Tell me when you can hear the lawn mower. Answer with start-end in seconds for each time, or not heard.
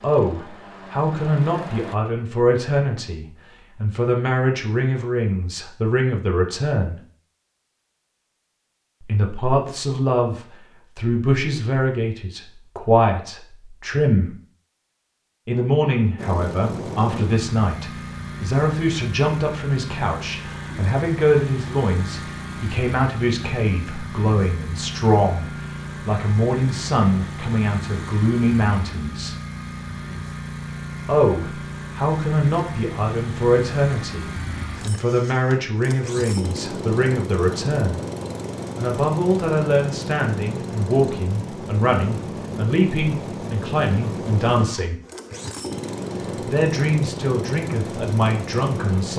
0.0-1.9, 16.1-49.1.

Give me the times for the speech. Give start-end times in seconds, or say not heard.
0.0-7.0, 9.0-14.3, 15.4-29.4, 31.1-38.0, 38.8-45.0, 46.4-49.1.